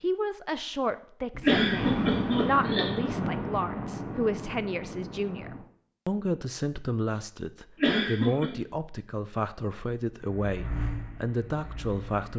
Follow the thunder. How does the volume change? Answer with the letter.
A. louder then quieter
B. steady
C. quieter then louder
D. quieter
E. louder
D.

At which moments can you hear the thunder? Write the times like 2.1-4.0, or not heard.
1.3-5.7.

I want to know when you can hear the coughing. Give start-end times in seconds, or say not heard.
1.4-3.1, 7.8-8.5.